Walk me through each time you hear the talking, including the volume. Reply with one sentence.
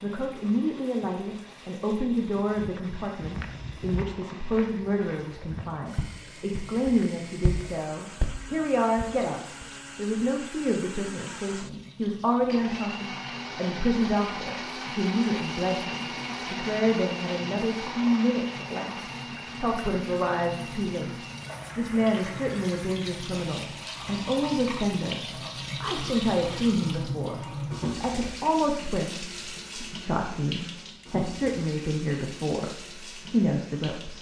You can hear the talking from 0.0 to 34.1 s, at a steady volume.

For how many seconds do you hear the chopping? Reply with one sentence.
You can't hear the chopping here.